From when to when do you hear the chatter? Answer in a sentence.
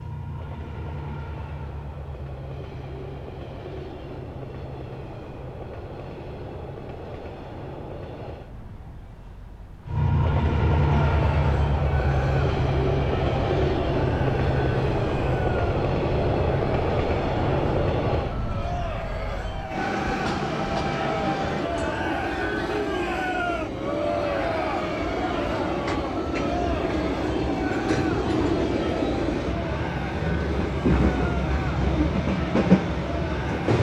The chatter can be heard from 10.9 to 33.7 s.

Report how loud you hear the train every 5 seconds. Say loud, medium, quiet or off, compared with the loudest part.
quiet, quiet, loud, loud, medium, loud, loud.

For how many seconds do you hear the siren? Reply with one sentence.
The siren can't be heard in this clip.